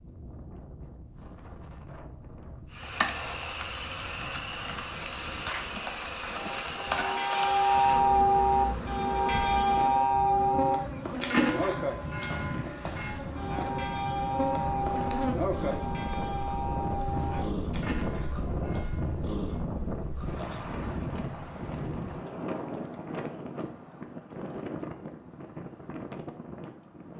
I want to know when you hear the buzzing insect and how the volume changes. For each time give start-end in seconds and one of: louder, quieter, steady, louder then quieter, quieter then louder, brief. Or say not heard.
2.7-17.5 steady.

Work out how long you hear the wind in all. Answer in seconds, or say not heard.
27 s.